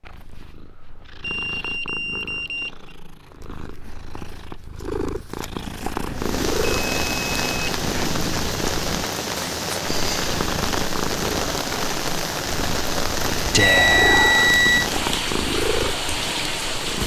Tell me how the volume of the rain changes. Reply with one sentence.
The loudness of the rain stays about the same.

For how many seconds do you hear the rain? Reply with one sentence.
You can hear the rain for 11 seconds altogether.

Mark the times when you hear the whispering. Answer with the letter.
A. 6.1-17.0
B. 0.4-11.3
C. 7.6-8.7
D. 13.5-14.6
D.